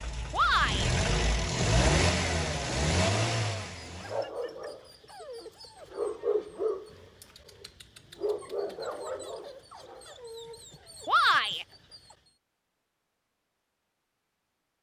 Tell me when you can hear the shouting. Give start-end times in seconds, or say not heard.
0.3-0.9, 11.1-11.7.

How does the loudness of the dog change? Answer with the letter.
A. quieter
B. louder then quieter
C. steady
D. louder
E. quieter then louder
B.